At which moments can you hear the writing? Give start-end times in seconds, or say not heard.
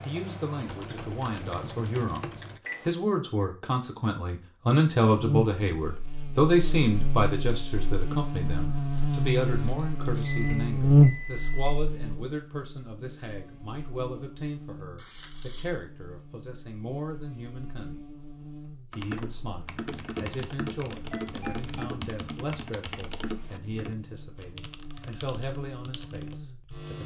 not heard.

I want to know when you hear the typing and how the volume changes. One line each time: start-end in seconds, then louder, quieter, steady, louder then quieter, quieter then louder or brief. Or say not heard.
0.0-2.6 brief
18.9-26.9 quieter.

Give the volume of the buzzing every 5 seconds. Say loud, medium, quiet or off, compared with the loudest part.
off, medium, loud, quiet, quiet, quiet.